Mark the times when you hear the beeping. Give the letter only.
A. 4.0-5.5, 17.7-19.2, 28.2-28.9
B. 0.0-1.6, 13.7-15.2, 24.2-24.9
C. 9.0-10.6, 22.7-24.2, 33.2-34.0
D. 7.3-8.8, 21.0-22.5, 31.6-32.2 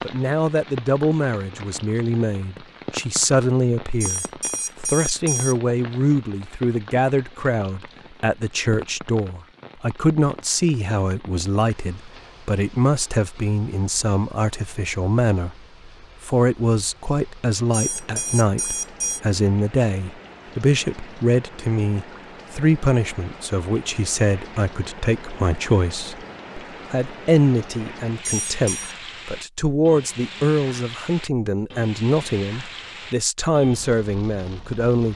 A.